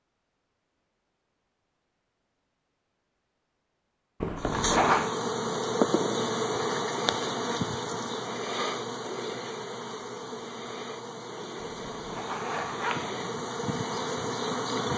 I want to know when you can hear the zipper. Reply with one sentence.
The zipper can be heard from 4.2 to 5.0 s and from 11.6 to 12.9 s.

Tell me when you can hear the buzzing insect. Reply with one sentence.
The buzzing insect can be heard from 4.3 to 14.9 s.